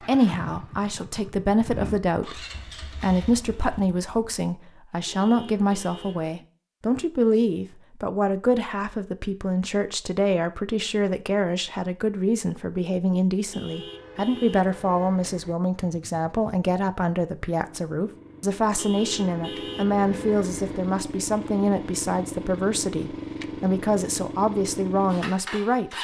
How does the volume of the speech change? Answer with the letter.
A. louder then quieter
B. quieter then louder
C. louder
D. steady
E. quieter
D.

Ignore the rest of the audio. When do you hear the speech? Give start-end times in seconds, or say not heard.
0.1-25.9.